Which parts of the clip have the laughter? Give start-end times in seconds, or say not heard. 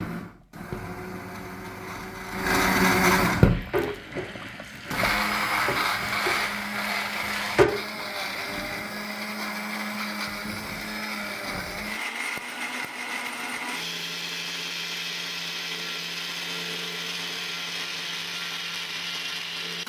not heard.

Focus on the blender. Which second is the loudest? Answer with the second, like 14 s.
3 s.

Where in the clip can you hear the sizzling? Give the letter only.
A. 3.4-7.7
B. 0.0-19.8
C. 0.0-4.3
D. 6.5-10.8
A.